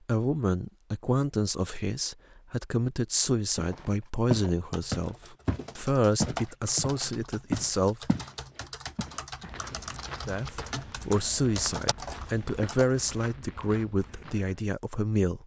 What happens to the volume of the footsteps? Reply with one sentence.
The volume of the footsteps goes down.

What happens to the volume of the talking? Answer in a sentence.
The loudness of the talking stays about the same.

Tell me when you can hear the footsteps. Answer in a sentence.
The footsteps can be heard from 3.5 to 8.3 s and from 8.9 to 14.5 s.